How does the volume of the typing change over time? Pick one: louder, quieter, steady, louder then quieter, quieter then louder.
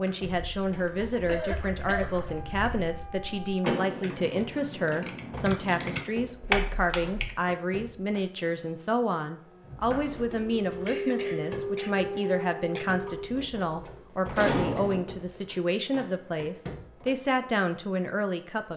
louder.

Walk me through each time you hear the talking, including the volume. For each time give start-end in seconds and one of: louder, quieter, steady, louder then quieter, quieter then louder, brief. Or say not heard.
0.0-18.7 steady.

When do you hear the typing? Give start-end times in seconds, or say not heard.
0.2-7.3.